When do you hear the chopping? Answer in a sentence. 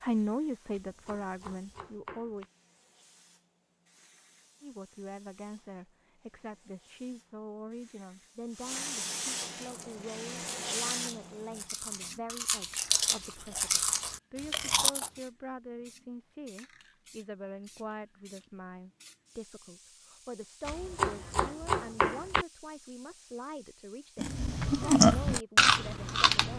The chopping can be heard from 0.7 to 2.5 s and from 20.6 to 22.4 s.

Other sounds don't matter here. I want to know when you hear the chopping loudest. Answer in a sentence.
The loudest moment of the chopping is at 22 seconds.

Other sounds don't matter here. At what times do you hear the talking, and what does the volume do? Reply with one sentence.
The talking can be heard briefly from 0.0 to 2.5 s; and from 4.6 to 26.5 s, at a steady volume.